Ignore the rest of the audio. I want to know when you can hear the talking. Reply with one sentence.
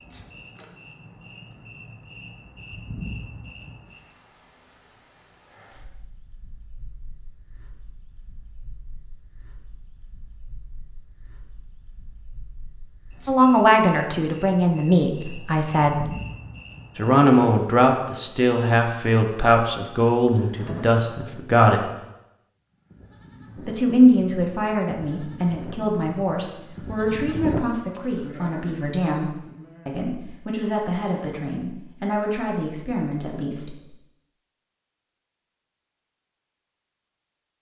The talking can be heard from 13.2 to 16.1 s, from 16.9 to 21.9 s and from 23.6 to 33.8 s.